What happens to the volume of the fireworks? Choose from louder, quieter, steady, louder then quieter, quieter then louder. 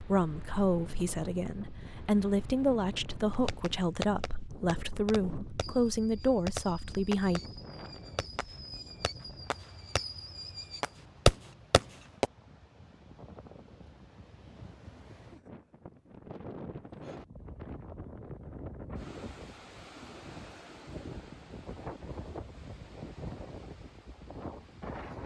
quieter then louder.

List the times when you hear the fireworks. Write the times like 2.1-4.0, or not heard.
3.3-12.2.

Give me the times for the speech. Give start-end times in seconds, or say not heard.
0.0-7.4.